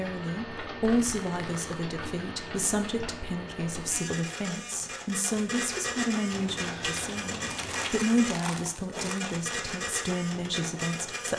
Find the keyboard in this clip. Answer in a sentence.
You can hear the keyboard from 6.3 to 7.9 s.